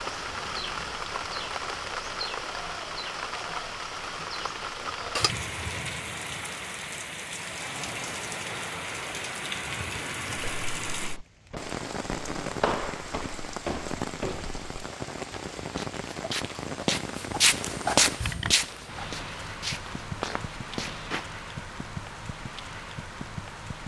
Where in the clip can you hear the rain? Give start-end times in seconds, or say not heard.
0.0-23.8.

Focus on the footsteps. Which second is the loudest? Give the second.
18 s.